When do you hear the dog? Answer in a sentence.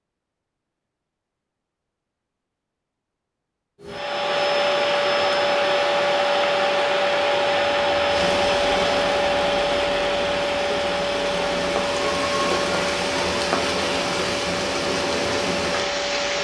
The dog can't be heard in this clip.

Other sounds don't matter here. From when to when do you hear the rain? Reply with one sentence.
You can hear the rain from 8.1 to 16.3 s.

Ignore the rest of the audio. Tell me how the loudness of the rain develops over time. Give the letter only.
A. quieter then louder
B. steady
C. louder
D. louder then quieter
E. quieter
C.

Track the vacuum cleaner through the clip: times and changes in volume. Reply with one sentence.
You can hear the vacuum cleaner from 3.8 to 16.3 s, getting quieter.